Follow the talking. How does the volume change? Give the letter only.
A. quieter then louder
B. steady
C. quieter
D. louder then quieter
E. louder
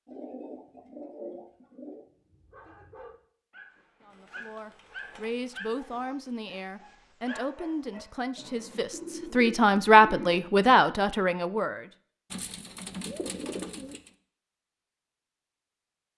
E.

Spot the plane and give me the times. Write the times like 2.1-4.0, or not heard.
not heard.